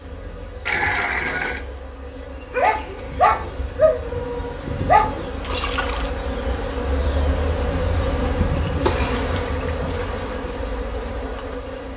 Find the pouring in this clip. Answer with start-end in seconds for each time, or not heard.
0.7-1.6, 5.4-6.1, 8.3-10.1.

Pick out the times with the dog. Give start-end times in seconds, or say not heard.
2.5-5.2.